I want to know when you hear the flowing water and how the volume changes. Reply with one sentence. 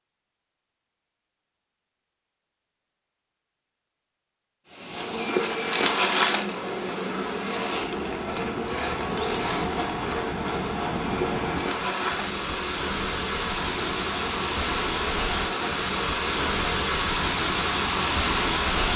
The flowing water can be heard from 4.7 to 18.9 s, getting louder.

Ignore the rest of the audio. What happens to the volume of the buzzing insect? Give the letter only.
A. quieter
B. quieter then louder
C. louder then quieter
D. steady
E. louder
A.